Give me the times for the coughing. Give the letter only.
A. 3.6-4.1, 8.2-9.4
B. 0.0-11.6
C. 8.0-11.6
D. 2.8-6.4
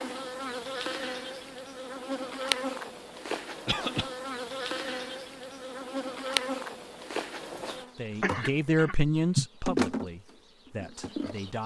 A.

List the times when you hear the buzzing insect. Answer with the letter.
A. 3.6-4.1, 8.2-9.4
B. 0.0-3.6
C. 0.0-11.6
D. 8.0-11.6
C.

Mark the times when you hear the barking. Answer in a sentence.
You can't hear the barking here.